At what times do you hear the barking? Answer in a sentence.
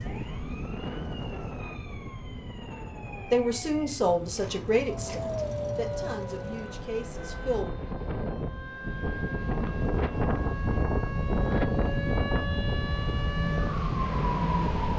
The barking can be heard from 4.8 to 6.7 s.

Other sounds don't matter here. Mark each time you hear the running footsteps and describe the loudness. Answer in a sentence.
You can't hear the running footsteps here.